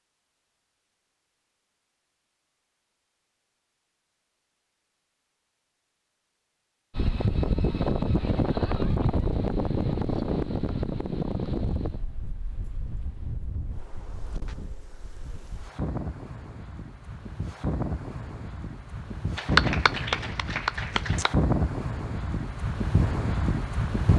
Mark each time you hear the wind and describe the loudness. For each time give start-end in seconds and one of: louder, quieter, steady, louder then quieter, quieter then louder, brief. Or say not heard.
7.0-24.1 quieter then louder.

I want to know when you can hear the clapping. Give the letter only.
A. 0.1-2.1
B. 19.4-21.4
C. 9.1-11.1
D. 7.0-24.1
B.